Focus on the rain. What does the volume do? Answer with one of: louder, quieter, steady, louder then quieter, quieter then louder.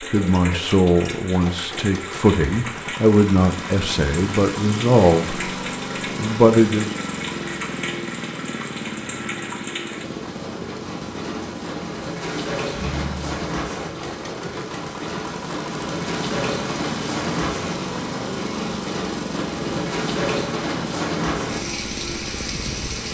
louder.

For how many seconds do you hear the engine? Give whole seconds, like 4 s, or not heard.
23 s.